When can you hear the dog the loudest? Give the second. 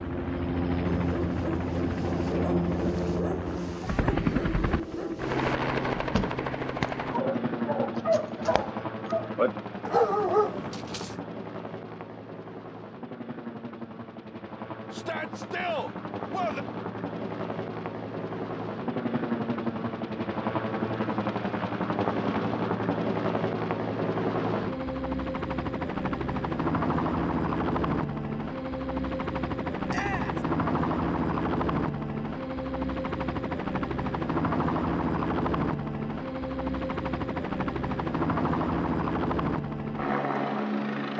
10 s.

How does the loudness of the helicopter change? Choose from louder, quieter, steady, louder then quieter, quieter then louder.
quieter then louder.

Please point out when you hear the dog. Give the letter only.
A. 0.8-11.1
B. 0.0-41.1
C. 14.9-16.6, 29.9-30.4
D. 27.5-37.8
A.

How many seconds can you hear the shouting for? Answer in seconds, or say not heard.
2 s.